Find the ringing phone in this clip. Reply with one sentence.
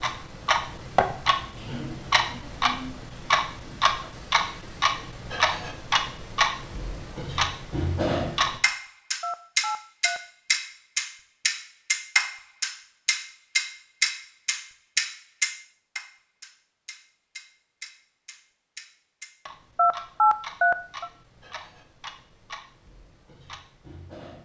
You can hear the ringing phone from 9.2 to 10.2 s and from 19.8 to 21.1 s.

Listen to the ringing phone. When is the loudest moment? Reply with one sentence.
The loudest moment of the ringing phone is at 20 seconds.